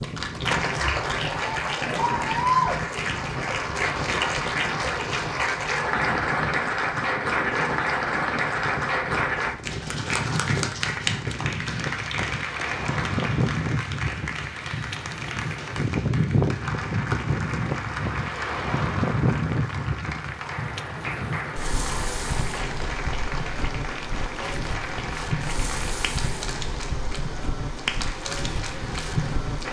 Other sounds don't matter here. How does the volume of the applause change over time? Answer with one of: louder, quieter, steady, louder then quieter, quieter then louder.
quieter.